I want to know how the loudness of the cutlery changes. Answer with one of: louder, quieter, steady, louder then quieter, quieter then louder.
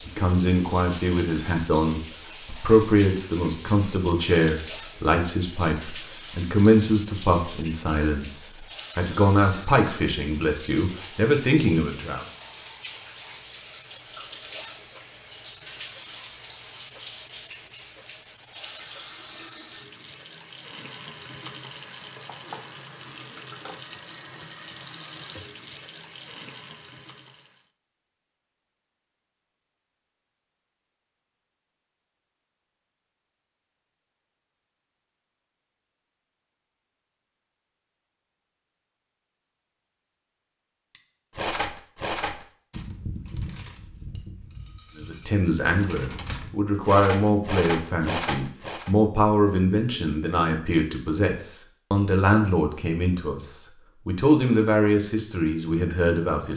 quieter then louder.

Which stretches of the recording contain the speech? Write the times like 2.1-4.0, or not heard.
0.1-12.2, 45.0-56.5.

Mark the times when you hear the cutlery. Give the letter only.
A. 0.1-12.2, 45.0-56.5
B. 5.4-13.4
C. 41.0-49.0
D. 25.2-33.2
C.